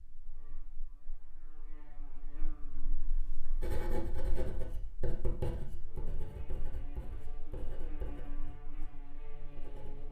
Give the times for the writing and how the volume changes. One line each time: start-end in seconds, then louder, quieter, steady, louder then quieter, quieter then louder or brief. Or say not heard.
3.6-10.0 quieter.